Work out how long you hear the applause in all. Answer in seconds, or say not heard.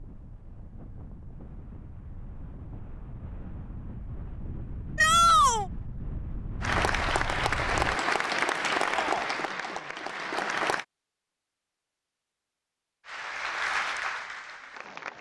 6 s.